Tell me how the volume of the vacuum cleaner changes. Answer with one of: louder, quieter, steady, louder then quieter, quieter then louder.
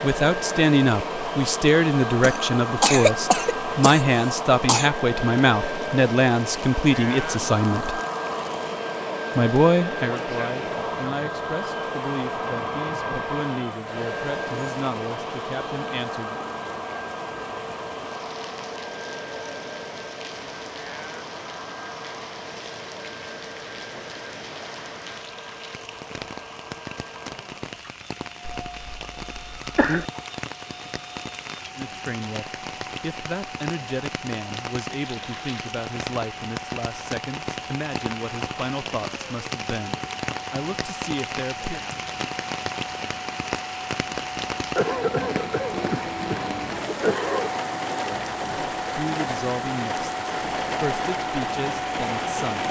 quieter then louder.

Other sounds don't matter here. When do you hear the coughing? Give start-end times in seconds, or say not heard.
2.2-4.9, 28.4-30.1, 44.8-47.5.